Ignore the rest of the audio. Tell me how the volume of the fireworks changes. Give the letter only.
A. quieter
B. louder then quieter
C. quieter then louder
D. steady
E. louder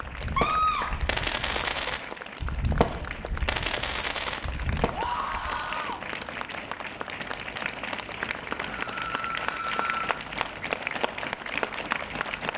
A.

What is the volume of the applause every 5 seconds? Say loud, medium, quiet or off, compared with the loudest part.
medium, loud, loud.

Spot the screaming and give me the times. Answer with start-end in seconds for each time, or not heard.
0.3-0.9, 4.9-6.0, 8.8-10.2.